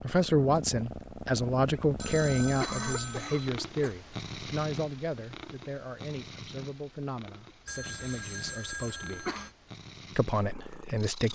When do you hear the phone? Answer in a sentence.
You can hear the phone from 1.9 to 3.5 s and from 7.7 to 9.5 s.